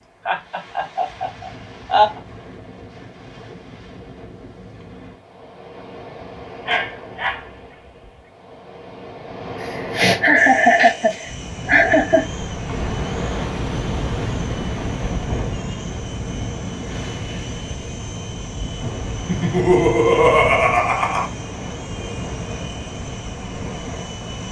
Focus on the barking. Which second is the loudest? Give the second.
7 s.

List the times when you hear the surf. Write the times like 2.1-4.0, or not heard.
0.0-24.4.